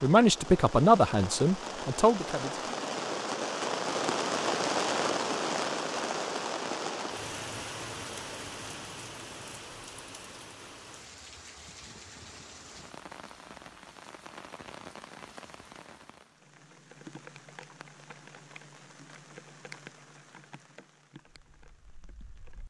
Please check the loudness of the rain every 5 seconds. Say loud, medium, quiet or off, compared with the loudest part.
loud, loud, quiet, quiet, quiet.